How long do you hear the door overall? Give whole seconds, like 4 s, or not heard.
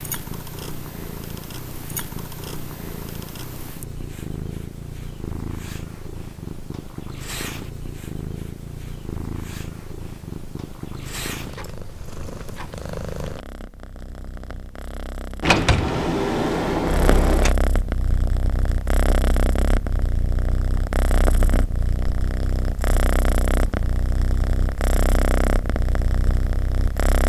2 s.